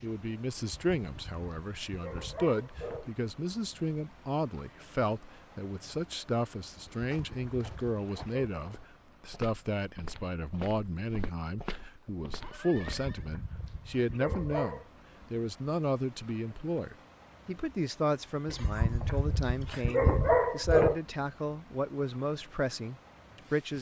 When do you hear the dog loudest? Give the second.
20 s.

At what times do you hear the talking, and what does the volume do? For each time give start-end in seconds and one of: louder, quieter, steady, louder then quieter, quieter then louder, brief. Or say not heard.
0.0-23.7 steady.